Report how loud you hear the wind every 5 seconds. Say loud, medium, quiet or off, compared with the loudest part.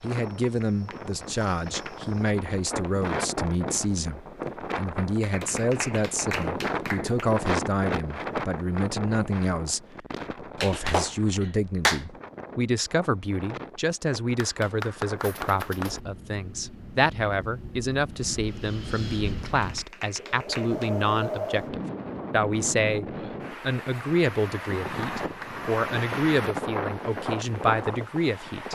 loud, loud, medium, medium, loud, loud.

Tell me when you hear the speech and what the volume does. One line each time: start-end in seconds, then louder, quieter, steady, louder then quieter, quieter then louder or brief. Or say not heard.
0.0-28.6 steady.